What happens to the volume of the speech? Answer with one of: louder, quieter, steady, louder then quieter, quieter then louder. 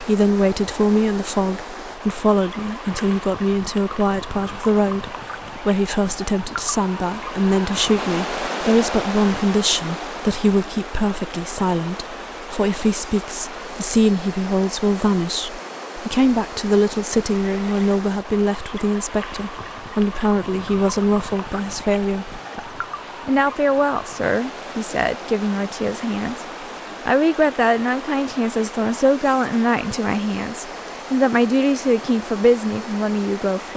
steady.